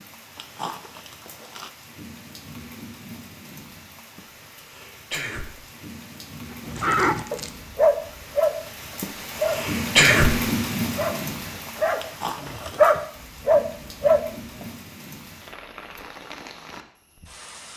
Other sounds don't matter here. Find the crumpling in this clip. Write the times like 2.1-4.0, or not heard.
0.3-1.7, 6.7-7.6, 11.9-12.8.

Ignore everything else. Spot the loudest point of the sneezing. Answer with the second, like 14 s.
10 s.